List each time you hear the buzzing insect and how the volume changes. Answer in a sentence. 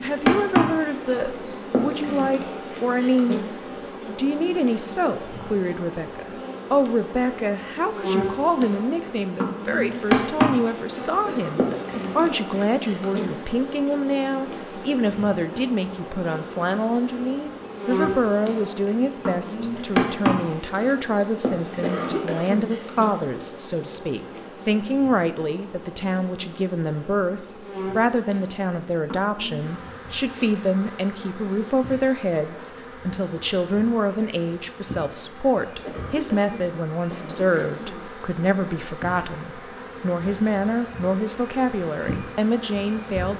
You can hear the buzzing insect from 0.0 to 43.3 s, getting quieter.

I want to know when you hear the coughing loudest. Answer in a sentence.
The loudest moment of the coughing is at 22 seconds.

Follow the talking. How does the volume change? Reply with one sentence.
The loudness of the talking stays about the same.